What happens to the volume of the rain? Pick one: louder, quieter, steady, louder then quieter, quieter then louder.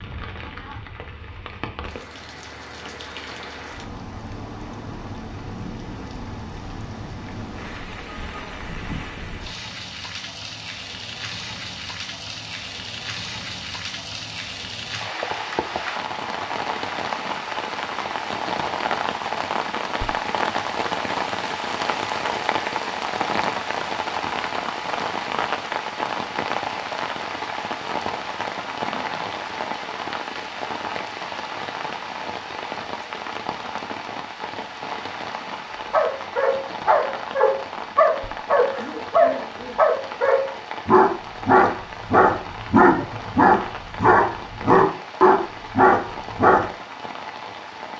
louder then quieter.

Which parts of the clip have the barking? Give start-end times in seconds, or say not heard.
35.9-46.6.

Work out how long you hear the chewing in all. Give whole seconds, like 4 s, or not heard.
not heard.